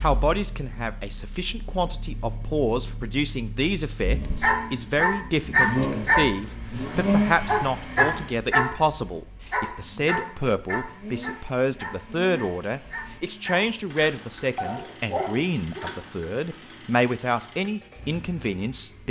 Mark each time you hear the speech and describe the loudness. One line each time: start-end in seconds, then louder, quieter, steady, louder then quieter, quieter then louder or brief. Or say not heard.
0.0-19.0 steady.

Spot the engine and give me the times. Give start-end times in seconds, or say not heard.
0.0-19.0.